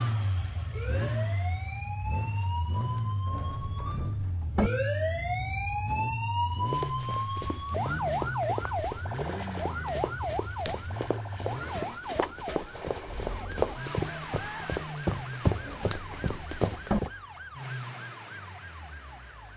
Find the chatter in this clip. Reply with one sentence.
The chatter can't be heard in this clip.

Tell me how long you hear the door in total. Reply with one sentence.
You can hear the door for 3 seconds altogether.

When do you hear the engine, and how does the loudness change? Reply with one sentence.
The engine can be heard from 0.0 to 19.5 s, getting quieter.